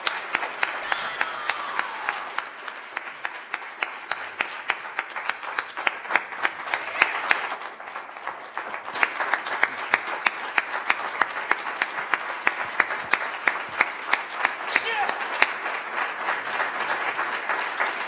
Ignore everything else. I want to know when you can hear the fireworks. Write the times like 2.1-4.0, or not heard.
not heard.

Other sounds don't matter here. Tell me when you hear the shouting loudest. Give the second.
15 s.